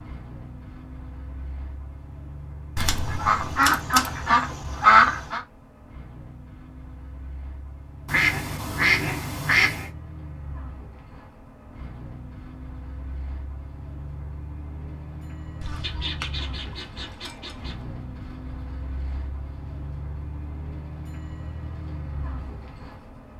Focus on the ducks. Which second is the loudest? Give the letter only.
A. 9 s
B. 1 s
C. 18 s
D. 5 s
D.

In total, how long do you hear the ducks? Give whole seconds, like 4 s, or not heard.
7 s.